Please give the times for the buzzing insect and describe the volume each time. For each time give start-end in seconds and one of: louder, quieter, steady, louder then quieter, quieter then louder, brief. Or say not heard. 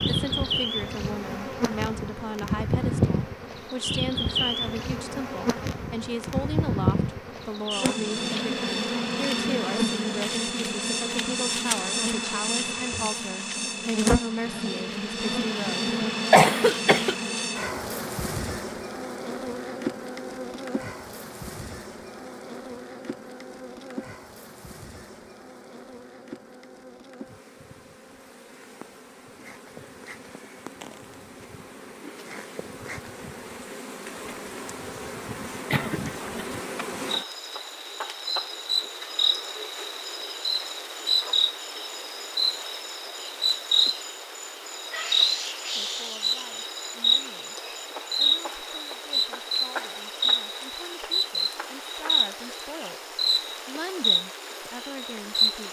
0.0-55.6 quieter then louder.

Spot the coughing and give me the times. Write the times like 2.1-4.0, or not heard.
16.3-17.1, 35.7-36.3.